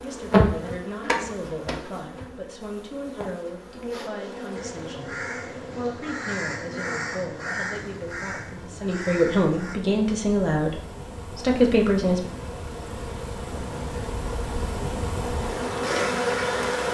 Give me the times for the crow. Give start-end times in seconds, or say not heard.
4.5-9.8.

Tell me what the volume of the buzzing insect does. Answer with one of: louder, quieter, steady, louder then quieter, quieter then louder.
quieter then louder.